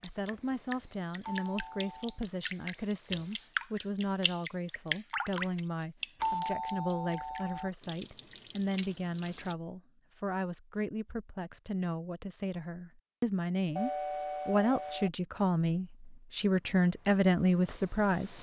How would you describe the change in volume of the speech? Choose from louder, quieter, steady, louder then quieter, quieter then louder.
louder.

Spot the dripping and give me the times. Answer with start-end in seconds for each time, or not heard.
0.0-9.6.